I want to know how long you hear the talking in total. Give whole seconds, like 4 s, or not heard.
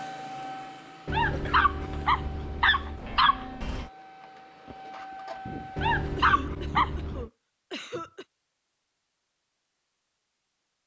not heard.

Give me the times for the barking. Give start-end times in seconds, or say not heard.
1.1-3.9, 5.8-7.3.